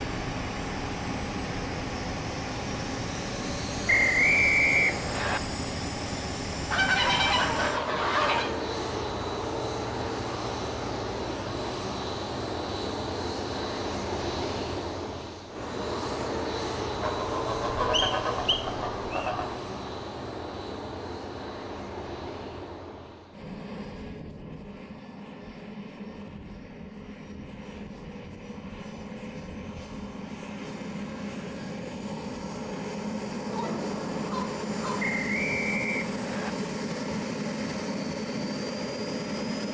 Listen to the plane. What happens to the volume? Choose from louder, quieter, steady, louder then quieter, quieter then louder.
quieter then louder.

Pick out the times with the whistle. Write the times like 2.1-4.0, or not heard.
3.9-5.4, 17.9-19.3, 35.0-36.5.